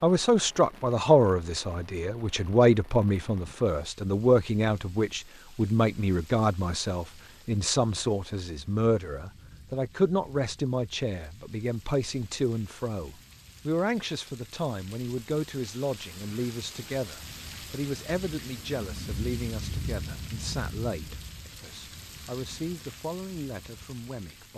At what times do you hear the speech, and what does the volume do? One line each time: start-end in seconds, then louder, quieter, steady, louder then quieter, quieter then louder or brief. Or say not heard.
0.0-24.5 quieter.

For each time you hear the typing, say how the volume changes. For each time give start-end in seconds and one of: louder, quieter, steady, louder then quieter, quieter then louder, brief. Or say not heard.
not heard.